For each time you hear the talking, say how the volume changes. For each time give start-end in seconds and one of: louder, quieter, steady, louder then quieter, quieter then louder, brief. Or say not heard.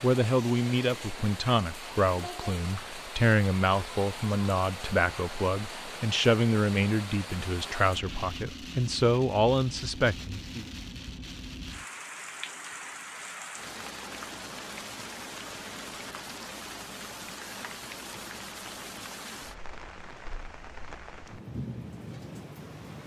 0.0-10.7 steady.